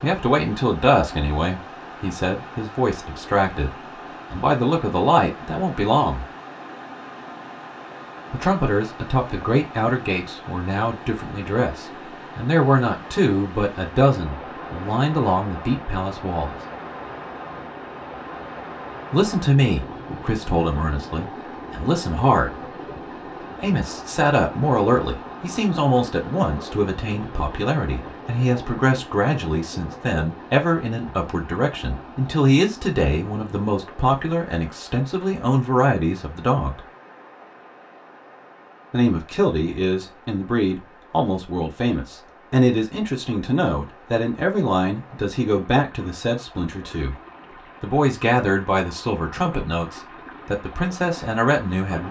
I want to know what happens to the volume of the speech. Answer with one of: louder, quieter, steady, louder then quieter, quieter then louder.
steady.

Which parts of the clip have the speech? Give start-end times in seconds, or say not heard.
0.0-6.2, 8.3-16.6, 19.1-22.6, 23.6-36.9, 38.9-47.1, 47.8-52.0.